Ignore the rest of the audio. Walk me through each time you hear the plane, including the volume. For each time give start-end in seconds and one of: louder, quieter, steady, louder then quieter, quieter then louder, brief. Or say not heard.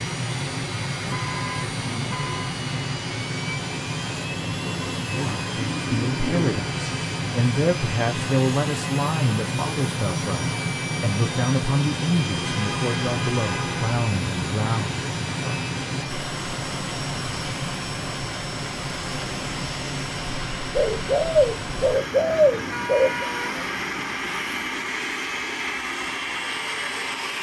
0.0-27.3 steady.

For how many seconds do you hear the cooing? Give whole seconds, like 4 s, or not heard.
4 s.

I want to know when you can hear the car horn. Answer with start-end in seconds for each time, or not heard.
1.1-2.5, 12.4-14.0, 22.7-23.6.